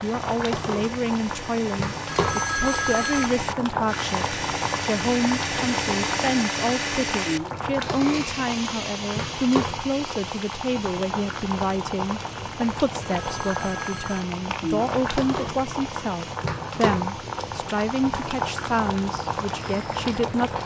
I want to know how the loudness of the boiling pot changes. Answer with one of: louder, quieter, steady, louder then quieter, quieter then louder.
steady.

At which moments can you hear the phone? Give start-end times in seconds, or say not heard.
2.0-3.4, 13.0-14.3.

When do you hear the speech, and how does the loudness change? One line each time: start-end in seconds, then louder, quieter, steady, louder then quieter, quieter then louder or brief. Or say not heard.
0.0-20.6 steady.